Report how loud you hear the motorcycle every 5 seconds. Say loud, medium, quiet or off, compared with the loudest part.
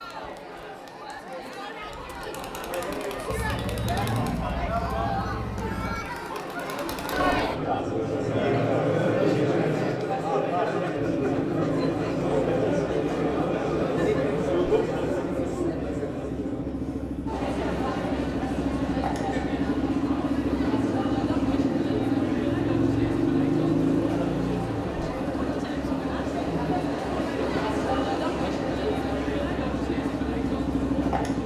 medium, medium, medium, medium, loud, medium, loud.